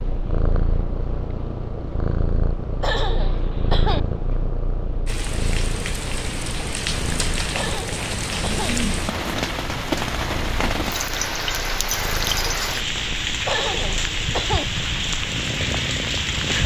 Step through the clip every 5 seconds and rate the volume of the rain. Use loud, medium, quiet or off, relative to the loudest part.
off, loud, loud, loud.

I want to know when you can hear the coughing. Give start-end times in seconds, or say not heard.
2.8-4.0, 7.5-8.8, 13.4-14.7.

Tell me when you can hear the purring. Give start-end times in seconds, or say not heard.
0.0-16.6.